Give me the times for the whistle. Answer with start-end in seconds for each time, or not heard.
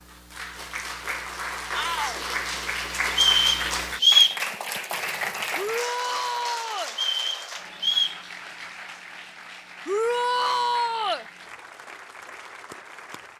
3.1-4.4, 6.9-8.2.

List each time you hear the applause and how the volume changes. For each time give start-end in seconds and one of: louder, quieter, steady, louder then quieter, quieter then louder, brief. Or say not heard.
0.0-13.3 quieter.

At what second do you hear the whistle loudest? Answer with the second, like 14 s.
4 s.